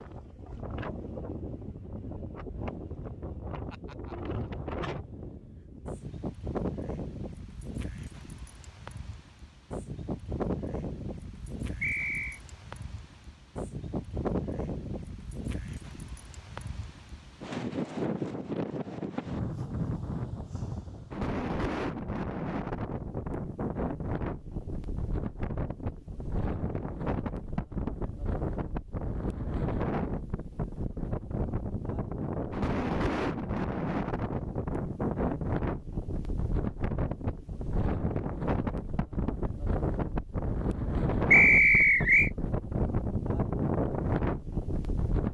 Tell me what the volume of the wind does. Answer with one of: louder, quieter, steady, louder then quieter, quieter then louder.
louder.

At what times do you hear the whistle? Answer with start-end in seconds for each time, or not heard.
11.8-12.4, 41.3-42.3.